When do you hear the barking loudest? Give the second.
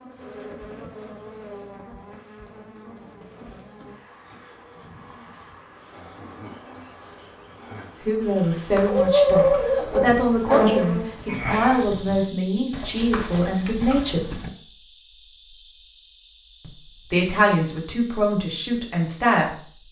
9 s.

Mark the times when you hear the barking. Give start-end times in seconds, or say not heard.
8.8-10.8.